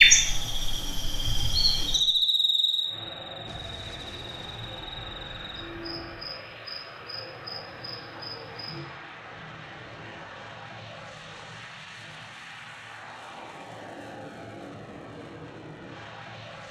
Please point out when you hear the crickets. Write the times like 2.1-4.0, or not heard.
0.0-8.8.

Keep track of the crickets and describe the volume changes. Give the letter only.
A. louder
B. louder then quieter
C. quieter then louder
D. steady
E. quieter
E.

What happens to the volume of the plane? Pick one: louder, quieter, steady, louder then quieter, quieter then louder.
steady.